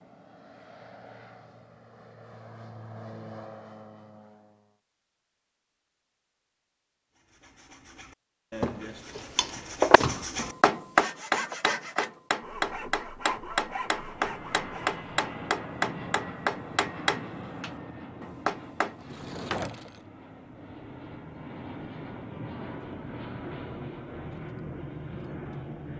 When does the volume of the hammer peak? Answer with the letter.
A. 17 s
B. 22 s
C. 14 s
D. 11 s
D.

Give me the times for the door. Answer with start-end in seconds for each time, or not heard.
8.6-10.2, 19.0-20.0.